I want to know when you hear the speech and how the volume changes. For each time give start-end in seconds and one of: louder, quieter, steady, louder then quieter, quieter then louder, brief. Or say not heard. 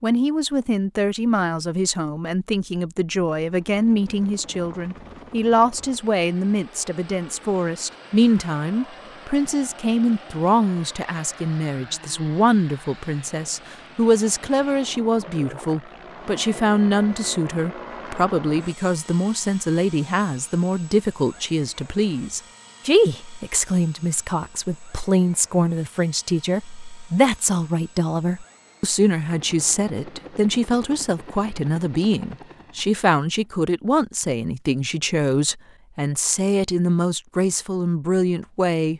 0.0-38.9 steady.